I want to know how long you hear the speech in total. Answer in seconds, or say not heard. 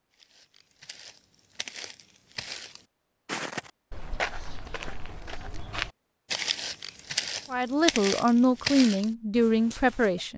3 s.